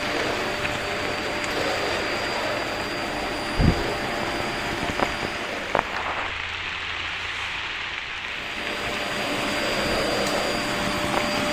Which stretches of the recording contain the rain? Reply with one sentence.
The rain can be heard from 0.0 to 11.4 s.